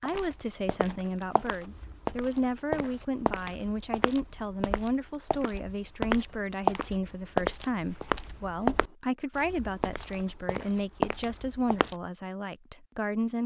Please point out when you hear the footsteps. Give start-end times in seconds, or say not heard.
0.1-11.9.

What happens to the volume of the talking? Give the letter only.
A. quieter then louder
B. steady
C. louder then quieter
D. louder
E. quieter
B.